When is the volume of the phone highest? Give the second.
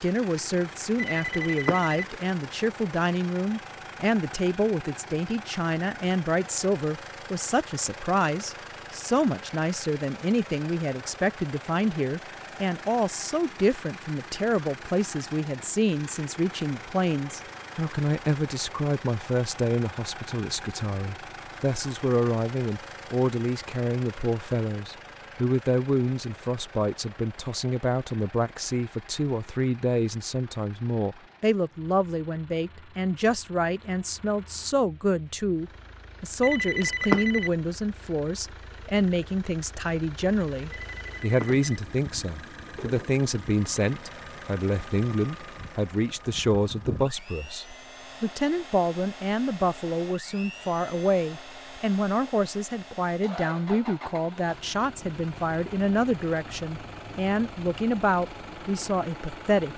37 s.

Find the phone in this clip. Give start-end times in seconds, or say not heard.
0.9-2.0, 36.4-37.5, 40.7-41.6.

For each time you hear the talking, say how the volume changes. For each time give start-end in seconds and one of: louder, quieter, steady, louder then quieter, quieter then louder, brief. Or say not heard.
0.0-59.7 steady.